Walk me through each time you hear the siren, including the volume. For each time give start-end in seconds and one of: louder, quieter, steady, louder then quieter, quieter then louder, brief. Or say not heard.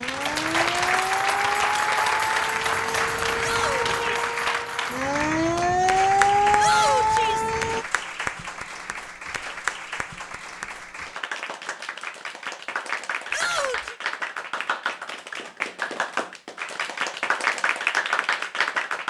0.0-7.8 louder.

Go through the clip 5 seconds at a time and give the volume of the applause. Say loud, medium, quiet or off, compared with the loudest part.
loud, medium, medium, loud.